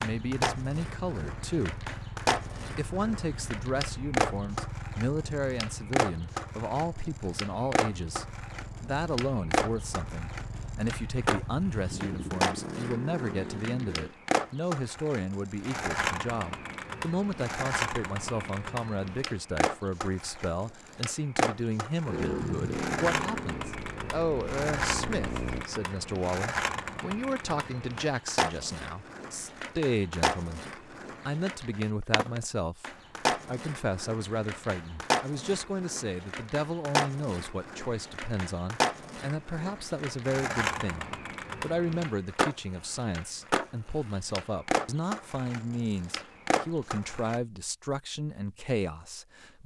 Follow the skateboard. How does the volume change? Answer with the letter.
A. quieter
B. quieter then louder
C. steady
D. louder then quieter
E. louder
C.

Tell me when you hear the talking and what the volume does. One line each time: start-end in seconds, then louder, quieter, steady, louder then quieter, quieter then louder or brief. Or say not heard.
0.0-1.9 brief
2.5-30.6 steady
31.2-49.6 steady.